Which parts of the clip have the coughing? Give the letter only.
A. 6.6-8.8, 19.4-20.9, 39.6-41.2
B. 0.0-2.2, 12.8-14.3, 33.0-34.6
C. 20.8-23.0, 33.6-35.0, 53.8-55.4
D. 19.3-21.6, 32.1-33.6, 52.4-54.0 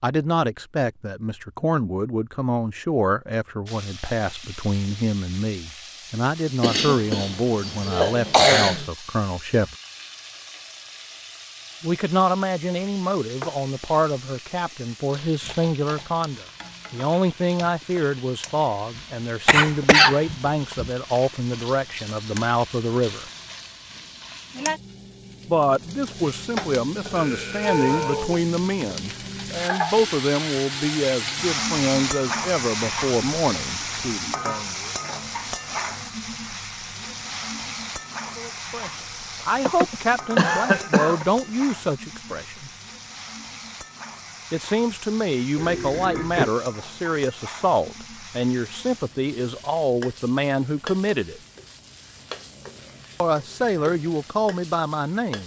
A.